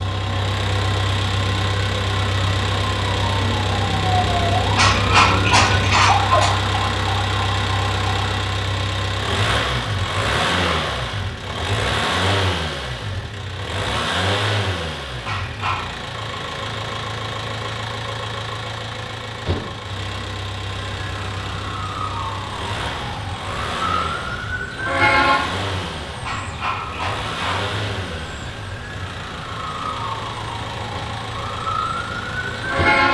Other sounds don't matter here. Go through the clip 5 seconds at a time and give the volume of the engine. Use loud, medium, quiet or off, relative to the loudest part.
loud, loud, loud, medium, medium, medium, medium.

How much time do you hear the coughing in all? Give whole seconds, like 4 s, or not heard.
4 s.